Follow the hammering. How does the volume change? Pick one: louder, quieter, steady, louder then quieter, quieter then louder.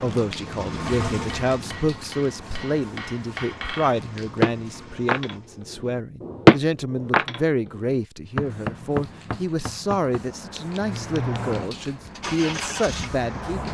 louder then quieter.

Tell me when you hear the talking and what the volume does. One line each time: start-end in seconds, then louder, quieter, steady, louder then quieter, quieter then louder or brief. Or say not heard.
0.0-13.6 steady.